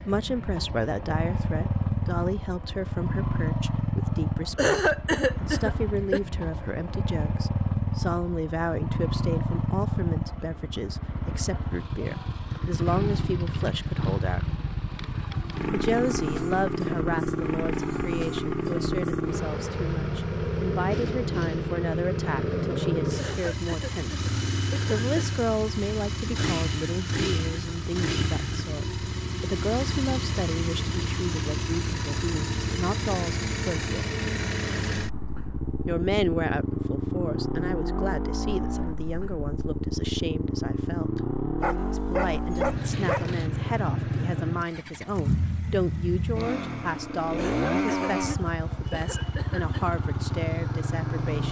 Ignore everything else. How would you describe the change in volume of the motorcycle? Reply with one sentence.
The loudness of the motorcycle stays about the same.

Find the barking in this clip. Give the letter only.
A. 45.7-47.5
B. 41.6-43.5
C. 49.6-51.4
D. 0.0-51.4
B.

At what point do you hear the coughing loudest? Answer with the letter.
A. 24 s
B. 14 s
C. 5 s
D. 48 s
C.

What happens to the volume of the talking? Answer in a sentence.
The volume of the talking stays about the same.